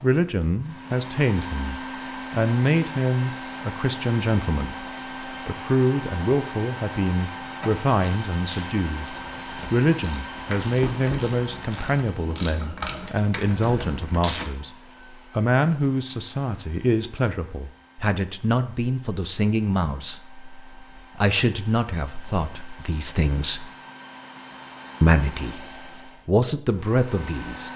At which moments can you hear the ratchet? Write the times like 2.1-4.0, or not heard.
7.9-14.5.